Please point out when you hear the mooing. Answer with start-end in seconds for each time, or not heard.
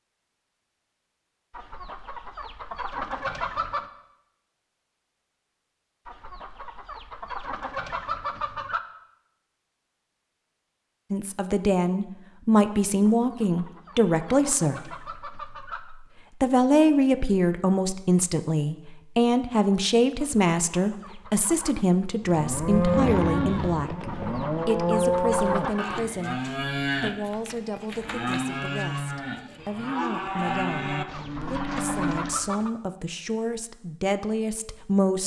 22.2-32.5.